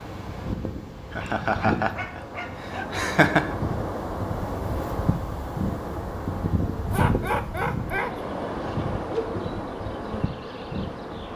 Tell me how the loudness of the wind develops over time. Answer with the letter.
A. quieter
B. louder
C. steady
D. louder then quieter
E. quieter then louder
C.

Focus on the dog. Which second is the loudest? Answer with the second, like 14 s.
7 s.